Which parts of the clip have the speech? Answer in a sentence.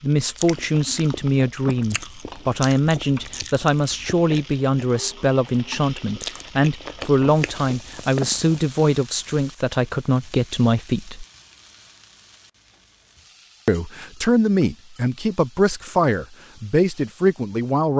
The speech can be heard from 0.0 to 11.2 s and from 13.7 to 17.9 s.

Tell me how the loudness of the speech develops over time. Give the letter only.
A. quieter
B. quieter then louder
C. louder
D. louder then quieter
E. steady
E.